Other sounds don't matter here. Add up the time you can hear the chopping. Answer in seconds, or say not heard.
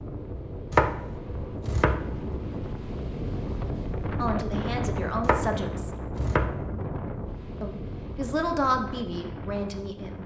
3 s.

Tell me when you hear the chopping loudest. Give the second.
1 s.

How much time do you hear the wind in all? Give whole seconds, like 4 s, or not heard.
10 s.